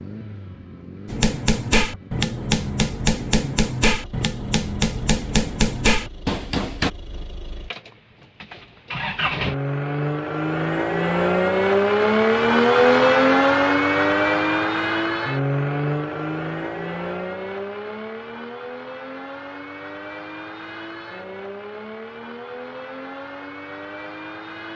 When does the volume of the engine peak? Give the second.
13 s.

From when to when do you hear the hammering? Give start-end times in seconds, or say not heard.
1.1-6.9.